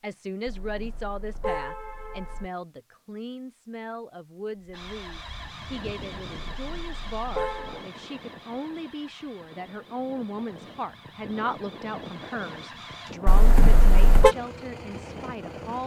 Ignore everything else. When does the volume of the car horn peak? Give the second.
14 s.